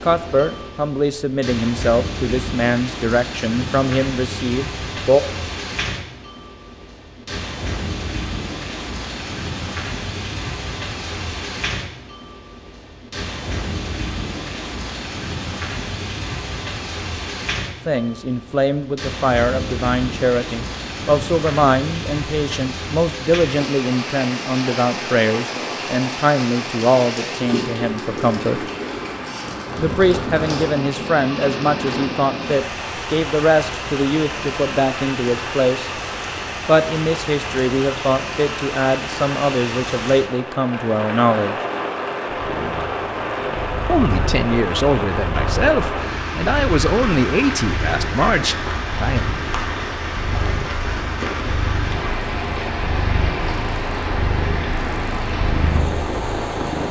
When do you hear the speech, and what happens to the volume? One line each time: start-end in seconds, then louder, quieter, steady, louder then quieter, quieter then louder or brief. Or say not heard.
0.0-5.2 steady
17.9-28.6 steady
29.8-35.9 steady
36.6-41.5 steady
43.9-49.2 steady.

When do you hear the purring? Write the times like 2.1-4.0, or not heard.
42.3-56.8.